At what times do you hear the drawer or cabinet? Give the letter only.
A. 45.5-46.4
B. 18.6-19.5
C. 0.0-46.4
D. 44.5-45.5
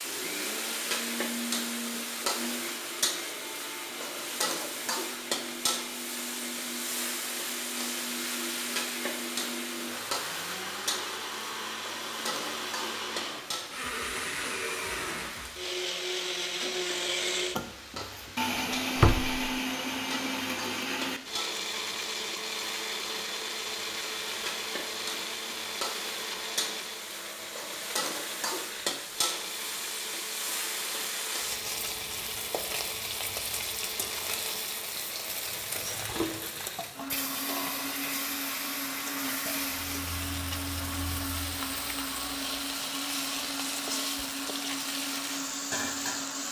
B.